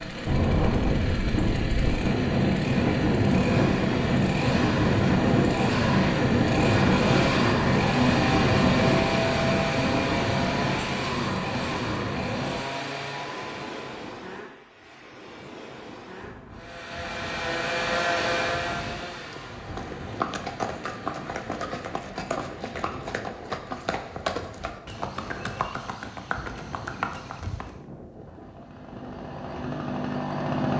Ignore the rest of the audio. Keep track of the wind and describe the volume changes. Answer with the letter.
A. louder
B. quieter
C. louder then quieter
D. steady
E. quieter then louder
B.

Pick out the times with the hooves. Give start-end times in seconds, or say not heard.
18.7-27.8.